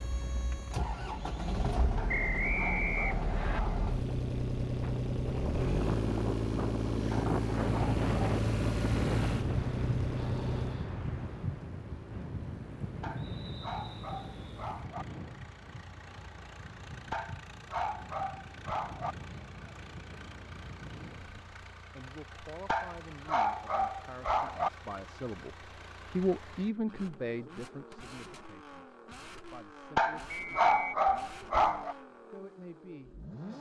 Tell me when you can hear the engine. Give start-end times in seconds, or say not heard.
0.0-33.5.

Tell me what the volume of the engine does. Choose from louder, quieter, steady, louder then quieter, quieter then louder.
quieter.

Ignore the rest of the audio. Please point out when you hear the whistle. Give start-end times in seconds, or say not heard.
2.0-3.6, 13.2-14.4, 30.3-30.9.